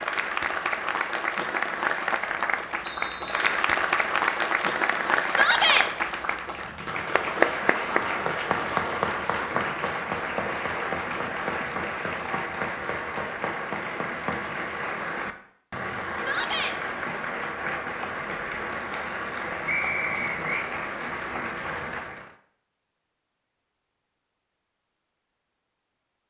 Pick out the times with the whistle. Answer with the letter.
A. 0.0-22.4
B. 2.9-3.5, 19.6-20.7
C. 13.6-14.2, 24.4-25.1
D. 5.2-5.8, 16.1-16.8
B.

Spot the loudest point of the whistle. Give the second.
20 s.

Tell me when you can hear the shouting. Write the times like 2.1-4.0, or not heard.
5.2-5.8, 16.1-16.8.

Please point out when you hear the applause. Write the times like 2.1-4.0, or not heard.
0.0-22.4.